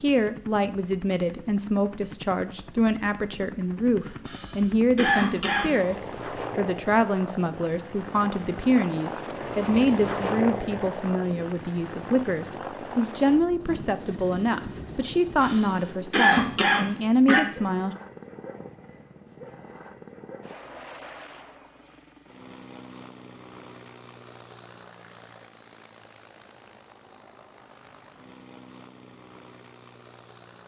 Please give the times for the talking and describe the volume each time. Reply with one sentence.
You can hear the talking from 0.0 to 17.9 s, at a steady volume.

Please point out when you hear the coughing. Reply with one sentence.
The coughing can be heard from 4.2 to 6.2 s and from 15.4 to 17.4 s.